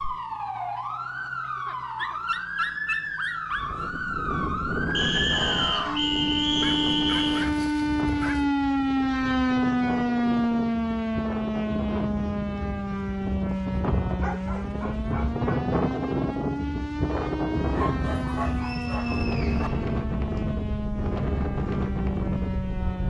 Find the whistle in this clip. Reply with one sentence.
You can hear the whistle from 4.9 to 7.5 s and from 18.4 to 20.4 s.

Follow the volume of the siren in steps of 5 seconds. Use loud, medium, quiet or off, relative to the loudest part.
medium, loud, loud, medium, medium.